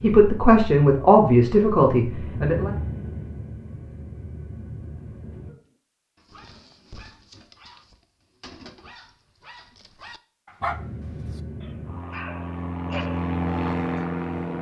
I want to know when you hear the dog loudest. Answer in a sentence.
The volume of the dog peaks at 11 seconds.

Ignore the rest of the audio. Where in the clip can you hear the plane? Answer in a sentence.
The plane can be heard from 0.0 to 5.5 s and from 10.6 to 14.5 s.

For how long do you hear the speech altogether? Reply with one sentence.
The speech can be heard for 3 seconds in total.